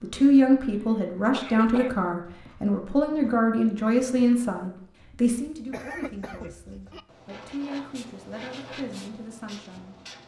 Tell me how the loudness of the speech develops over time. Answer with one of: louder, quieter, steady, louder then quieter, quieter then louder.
quieter.